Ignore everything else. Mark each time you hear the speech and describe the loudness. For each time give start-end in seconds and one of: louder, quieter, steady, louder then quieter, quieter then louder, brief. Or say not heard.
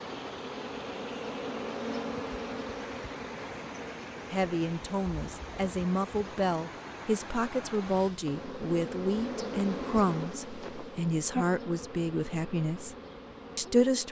4.3-12.9 steady
13.6-14.0 brief.